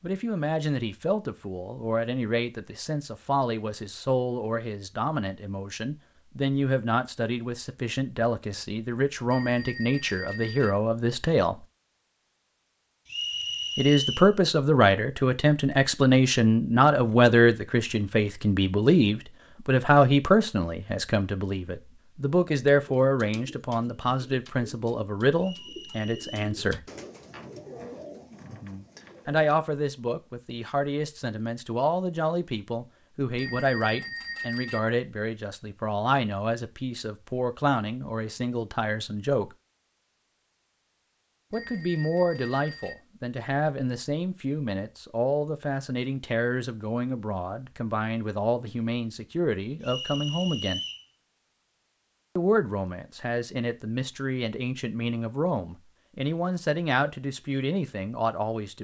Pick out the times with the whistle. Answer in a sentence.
The whistle can be heard from 13.1 to 14.3 s, from 25.4 to 26.5 s and from 49.8 to 51.0 s.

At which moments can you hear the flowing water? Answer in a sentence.
You can't hear the flowing water here.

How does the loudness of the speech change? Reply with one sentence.
The volume of the speech goes up, then down.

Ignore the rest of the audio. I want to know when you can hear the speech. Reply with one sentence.
You can hear the speech from 0.0 to 11.6 s, from 13.8 to 26.9 s, from 29.2 to 39.5 s, from 41.5 to 50.8 s and from 52.4 to 58.7 s.